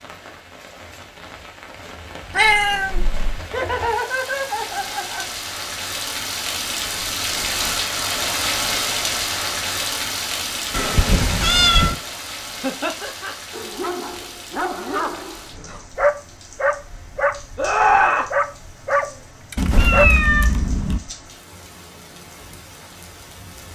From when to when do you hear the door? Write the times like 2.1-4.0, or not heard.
not heard.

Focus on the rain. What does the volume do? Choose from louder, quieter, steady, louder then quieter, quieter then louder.
louder then quieter.